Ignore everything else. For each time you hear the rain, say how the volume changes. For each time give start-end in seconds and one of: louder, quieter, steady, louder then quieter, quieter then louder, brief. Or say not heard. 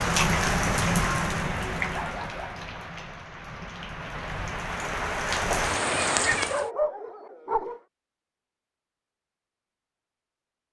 0.0-6.7 quieter then louder.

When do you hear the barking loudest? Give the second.
7 s.